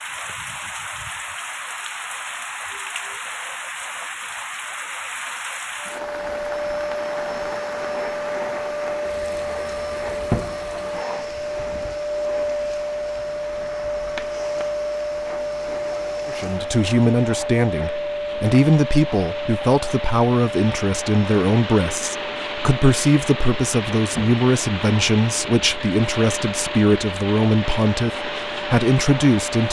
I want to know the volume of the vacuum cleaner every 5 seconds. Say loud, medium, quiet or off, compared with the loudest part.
off, loud, loud, loud, medium, medium.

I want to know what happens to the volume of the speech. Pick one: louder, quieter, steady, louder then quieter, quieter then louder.
steady.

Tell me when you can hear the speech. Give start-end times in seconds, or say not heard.
16.2-29.6.